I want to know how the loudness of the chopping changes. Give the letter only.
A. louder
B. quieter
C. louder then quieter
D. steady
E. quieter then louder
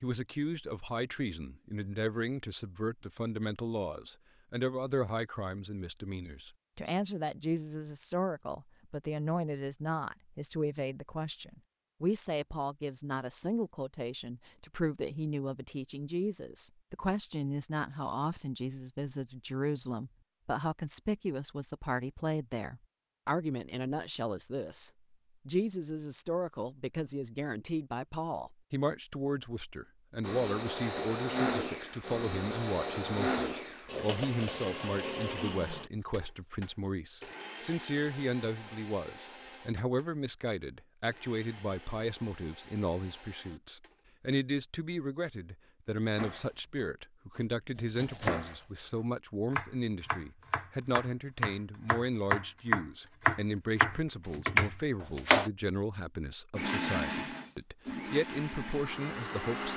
A.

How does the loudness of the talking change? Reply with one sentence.
The loudness of the talking stays about the same.